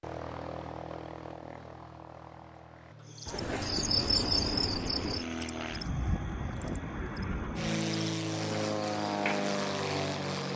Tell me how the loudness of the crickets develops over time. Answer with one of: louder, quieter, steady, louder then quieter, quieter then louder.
quieter then louder.